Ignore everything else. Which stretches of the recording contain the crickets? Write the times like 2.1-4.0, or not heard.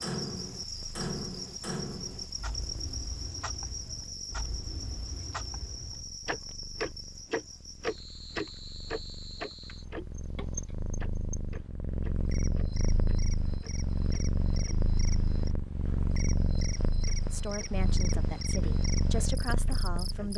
0.0-20.3.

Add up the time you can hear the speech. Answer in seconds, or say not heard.
3 s.